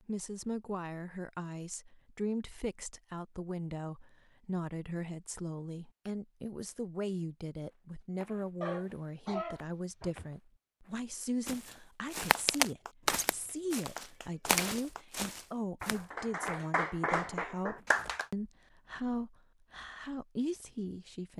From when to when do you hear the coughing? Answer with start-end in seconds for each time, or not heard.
8.6-10.3.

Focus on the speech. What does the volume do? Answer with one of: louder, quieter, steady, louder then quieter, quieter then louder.
steady.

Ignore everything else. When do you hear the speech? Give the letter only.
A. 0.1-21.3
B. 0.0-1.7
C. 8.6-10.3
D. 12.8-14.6
A.